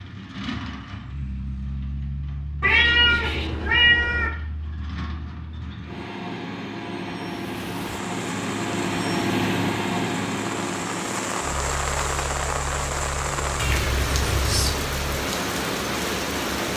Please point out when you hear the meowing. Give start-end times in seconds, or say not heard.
2.6-4.3, 13.6-14.8.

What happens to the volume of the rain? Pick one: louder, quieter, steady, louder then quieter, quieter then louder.
louder.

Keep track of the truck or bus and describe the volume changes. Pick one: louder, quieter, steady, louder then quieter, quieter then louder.
louder then quieter.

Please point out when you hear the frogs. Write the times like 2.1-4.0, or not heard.
not heard.